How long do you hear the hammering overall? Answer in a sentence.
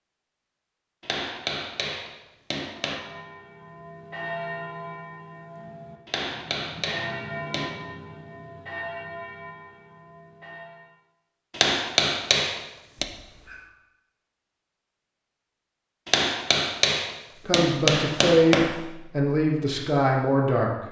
You can hear the hammering for 8 seconds altogether.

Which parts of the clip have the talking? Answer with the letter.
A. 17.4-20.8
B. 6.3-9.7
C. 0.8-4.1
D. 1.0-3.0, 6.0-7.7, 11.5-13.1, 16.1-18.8
A.